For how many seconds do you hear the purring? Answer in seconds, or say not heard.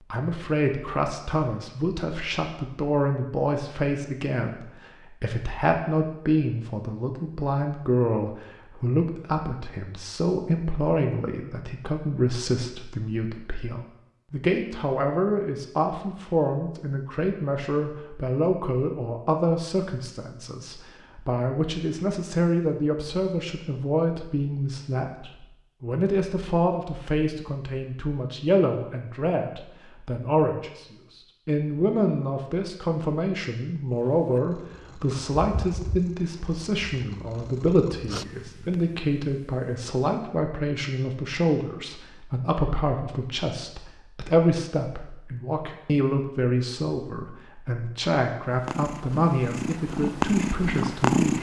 9 s.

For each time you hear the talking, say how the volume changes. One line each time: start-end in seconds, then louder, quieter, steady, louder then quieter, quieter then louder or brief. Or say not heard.
0.1-51.3 steady.